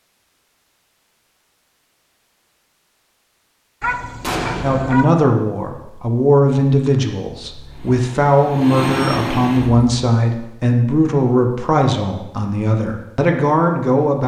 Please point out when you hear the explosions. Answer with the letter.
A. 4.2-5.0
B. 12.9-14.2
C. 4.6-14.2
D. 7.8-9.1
A.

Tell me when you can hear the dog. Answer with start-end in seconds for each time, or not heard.
3.8-5.0.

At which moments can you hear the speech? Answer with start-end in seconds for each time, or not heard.
4.6-14.2.